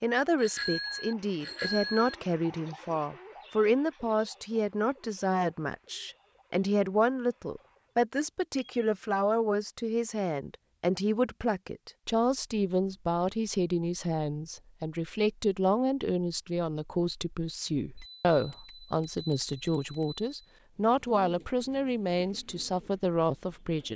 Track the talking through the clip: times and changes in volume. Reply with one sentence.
You can hear the talking from 0.0 to 23.9 s, at a steady volume.